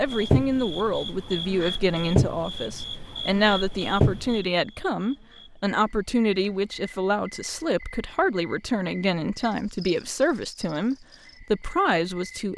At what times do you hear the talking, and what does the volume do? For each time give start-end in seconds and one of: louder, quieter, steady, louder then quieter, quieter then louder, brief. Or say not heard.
0.0-12.5 steady.